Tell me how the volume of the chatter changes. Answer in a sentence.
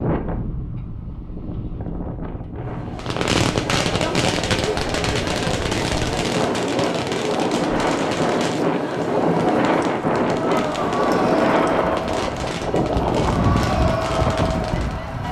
The loudness of the chatter stays about the same.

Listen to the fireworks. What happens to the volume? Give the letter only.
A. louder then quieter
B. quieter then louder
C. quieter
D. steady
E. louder
C.